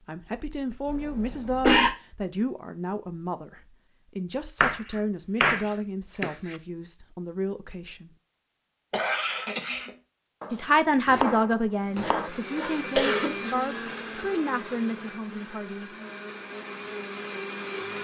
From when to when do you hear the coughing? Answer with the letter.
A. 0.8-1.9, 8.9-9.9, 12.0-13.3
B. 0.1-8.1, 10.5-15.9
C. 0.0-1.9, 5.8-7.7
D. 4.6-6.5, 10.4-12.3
A.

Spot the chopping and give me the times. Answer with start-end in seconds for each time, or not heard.
4.6-6.5, 10.4-12.3.